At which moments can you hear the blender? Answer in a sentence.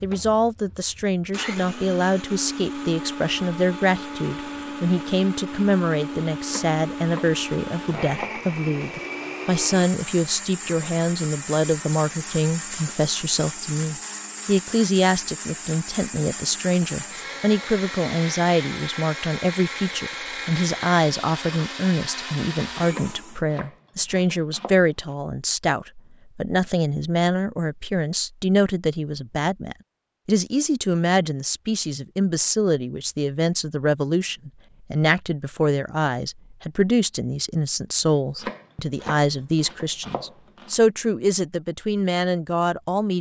You can hear the blender from 0.0 to 23.4 s.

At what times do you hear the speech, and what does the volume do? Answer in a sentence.
The speech can be heard from 0.0 to 43.1 s, at a steady volume.